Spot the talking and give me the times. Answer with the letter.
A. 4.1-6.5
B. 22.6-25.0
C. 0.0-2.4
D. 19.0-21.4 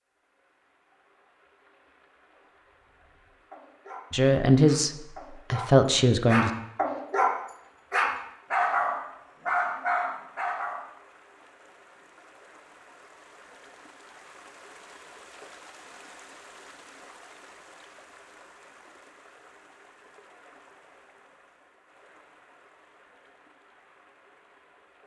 A.